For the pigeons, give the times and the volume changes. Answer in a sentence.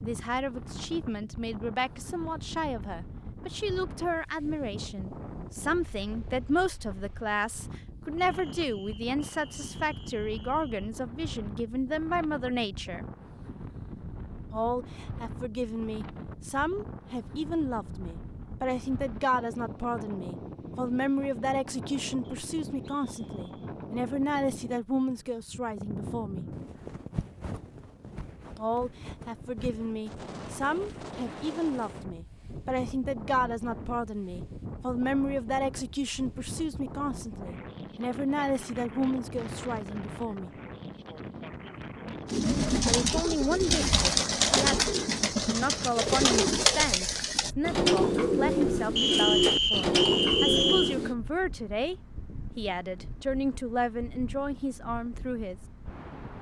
The pigeons can be heard from 42.2 to 51.1 s, at a steady volume.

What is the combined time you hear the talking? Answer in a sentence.
The talking can be heard for 49 seconds in total.